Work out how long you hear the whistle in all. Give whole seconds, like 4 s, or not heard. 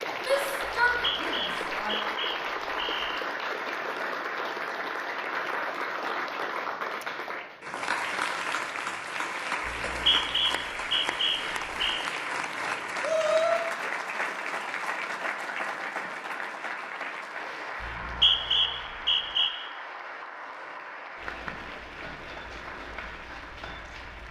7 s.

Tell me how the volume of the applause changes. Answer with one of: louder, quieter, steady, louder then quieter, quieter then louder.
quieter.